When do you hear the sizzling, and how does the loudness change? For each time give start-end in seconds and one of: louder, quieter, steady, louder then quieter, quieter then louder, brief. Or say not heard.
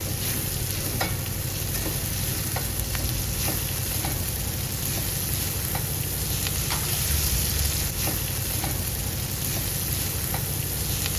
0.0-11.1 steady.